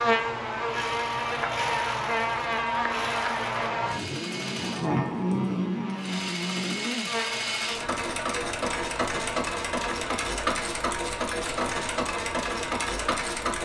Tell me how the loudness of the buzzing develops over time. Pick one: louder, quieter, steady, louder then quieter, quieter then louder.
quieter.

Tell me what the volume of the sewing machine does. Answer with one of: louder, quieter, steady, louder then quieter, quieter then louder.
louder.